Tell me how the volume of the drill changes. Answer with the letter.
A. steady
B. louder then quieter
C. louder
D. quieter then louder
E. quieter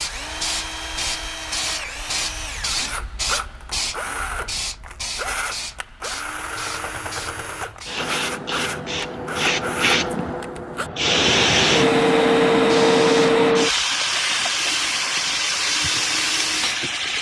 A.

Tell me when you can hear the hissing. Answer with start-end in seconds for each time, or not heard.
0.0-17.1.